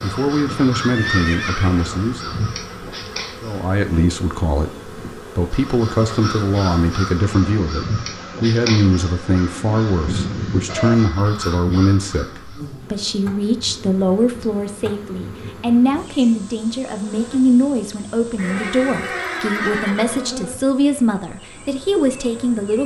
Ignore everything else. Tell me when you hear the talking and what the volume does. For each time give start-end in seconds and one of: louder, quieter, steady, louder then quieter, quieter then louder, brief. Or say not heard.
0.0-2.4 brief
3.4-22.8 steady.